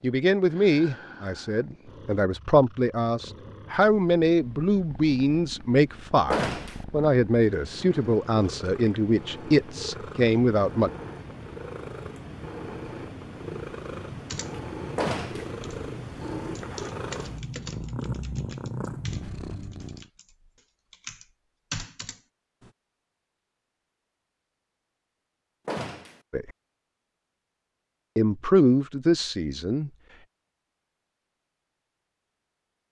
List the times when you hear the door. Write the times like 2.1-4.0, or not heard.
6.3-6.8, 14.9-15.5, 25.6-26.2.